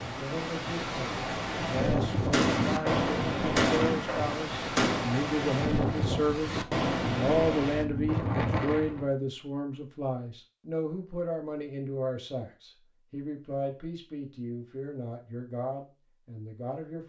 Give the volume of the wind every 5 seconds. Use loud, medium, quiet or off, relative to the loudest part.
loud, loud, off, off.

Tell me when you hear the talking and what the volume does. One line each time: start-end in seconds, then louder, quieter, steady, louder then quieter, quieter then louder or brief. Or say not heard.
0.0-17.0 louder then quieter.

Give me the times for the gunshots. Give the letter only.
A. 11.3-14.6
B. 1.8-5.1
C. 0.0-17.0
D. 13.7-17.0
B.